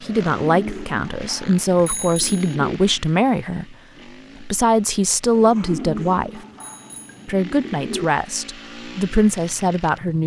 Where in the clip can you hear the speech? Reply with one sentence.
The speech can be heard from 0.0 to 3.8 s, from 4.4 to 6.4 s and from 7.2 to 10.2 s.